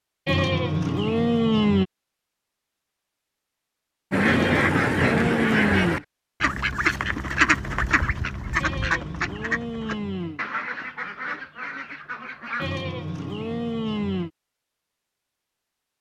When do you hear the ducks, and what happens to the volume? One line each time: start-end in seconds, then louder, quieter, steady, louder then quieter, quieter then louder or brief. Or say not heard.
4.1-12.7 quieter.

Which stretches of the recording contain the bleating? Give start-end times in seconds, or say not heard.
0.2-1.9, 4.2-6.0, 8.6-10.4, 12.6-14.3.